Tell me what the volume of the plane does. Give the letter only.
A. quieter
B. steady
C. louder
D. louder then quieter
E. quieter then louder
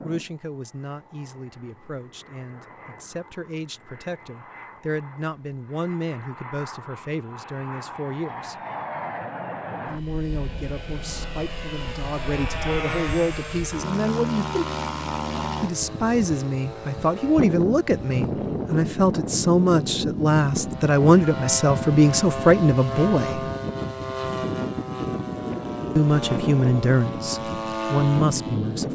C.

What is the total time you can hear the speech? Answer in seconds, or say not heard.
24 s.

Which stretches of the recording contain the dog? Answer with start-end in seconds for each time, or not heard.
not heard.